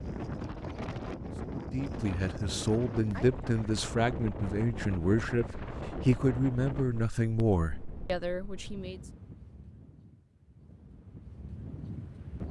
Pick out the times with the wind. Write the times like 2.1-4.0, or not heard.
0.0-12.4.